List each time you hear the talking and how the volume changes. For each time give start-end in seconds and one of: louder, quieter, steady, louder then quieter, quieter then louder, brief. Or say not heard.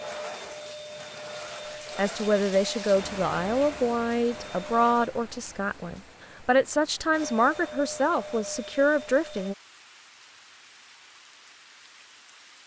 1.9-9.6 quieter then louder.